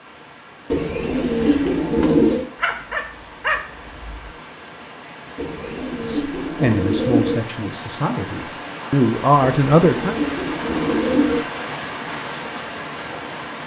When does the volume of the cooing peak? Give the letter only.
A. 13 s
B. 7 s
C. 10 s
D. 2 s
D.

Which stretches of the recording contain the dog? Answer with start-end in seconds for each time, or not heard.
2.5-4.3.